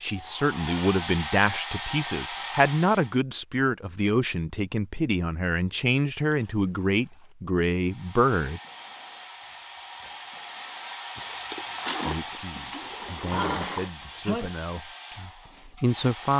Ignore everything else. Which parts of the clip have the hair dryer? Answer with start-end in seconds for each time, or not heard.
0.0-3.1, 7.8-16.3.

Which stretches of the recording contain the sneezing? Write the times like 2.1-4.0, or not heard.
13.3-14.5.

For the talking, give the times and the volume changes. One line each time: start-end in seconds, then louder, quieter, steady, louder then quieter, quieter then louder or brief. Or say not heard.
0.0-8.6 steady
12.1-16.3 louder.